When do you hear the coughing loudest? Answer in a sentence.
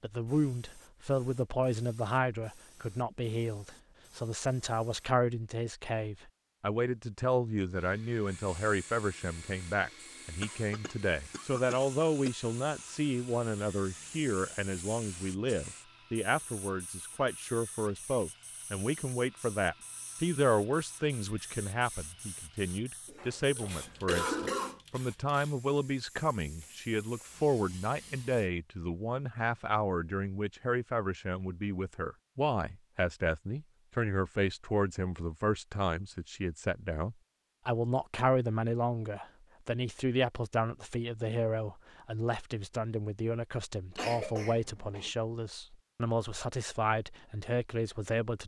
The loudest moment of the coughing is at 24 seconds.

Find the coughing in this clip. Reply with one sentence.
You can hear the coughing from 10.4 to 12.3 s, from 23.1 to 24.8 s and from 44.0 to 45.1 s.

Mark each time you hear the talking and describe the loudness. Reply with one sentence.
You can hear the talking from 0.0 to 48.4 s, at a steady volume.